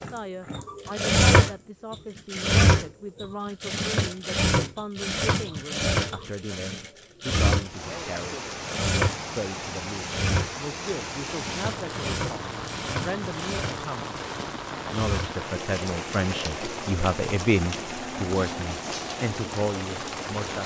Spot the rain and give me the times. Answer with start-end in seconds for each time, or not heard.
7.7-20.6.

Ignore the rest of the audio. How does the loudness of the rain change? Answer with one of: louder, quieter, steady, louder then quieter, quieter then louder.
steady.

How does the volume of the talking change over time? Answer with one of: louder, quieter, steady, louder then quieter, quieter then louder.
louder.